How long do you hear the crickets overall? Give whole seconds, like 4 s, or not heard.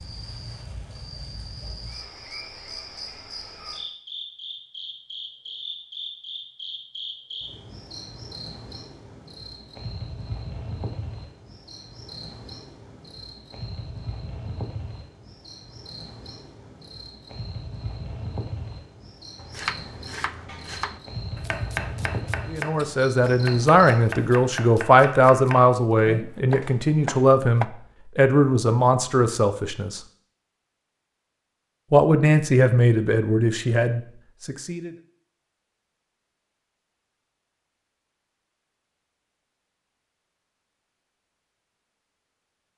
24 s.